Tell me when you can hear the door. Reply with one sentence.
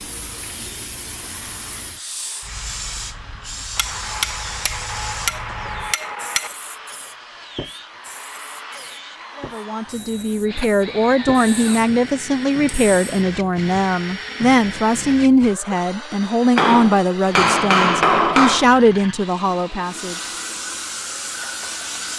The door can't be heard in this clip.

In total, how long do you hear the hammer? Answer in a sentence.
The hammer can be heard for 5 seconds in total.